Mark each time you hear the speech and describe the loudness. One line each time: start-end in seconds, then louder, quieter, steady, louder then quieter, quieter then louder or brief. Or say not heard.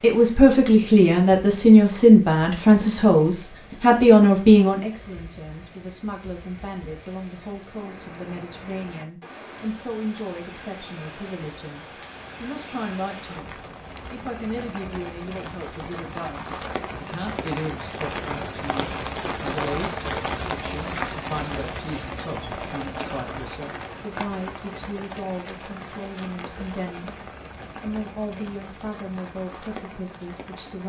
0.0-30.8 quieter.